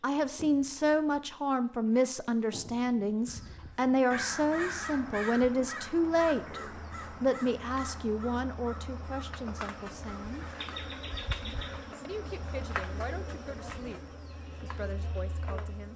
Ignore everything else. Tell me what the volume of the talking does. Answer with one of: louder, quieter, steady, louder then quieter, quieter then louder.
quieter.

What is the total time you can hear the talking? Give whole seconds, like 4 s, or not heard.
14 s.